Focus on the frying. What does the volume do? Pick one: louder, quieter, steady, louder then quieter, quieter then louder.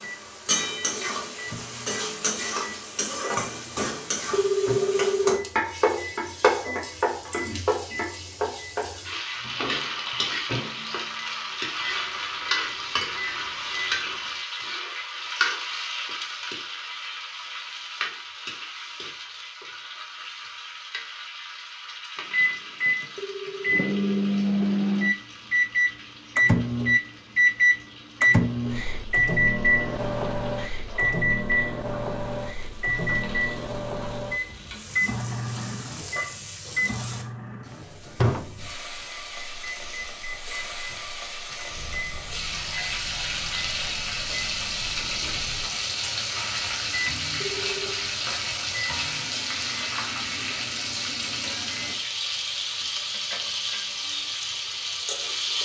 quieter then louder.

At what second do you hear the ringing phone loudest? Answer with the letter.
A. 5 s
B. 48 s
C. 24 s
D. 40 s
A.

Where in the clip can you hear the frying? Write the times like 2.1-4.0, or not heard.
0.0-55.6.